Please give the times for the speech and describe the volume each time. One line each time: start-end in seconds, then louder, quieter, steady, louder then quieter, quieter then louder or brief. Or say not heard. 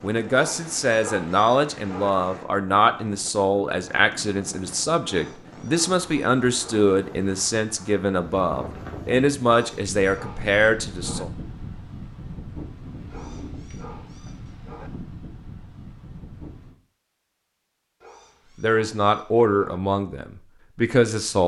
0.0-11.3 steady
18.6-21.4 brief.